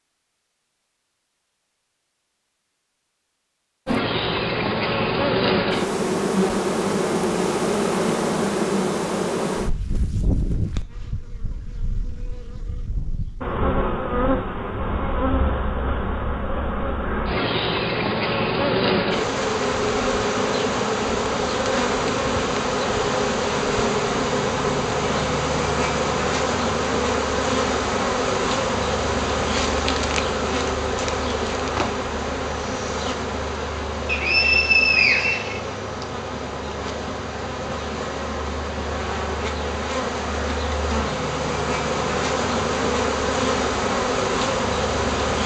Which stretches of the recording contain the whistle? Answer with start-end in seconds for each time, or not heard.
34.0-36.0.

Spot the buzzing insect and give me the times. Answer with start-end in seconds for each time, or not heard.
3.9-45.4.